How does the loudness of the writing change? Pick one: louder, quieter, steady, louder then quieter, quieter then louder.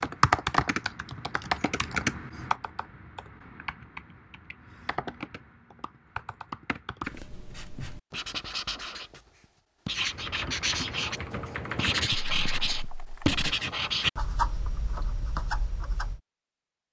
louder then quieter.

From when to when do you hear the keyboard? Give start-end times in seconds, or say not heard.
0.0-7.2, 10.1-13.4.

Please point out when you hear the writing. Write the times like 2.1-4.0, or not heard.
7.0-16.2.